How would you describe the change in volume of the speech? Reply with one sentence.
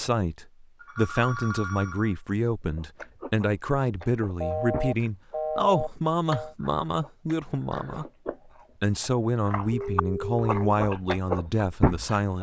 The loudness of the speech stays about the same.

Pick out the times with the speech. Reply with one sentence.
The speech can be heard from 0.0 to 8.1 s and from 8.8 to 12.3 s.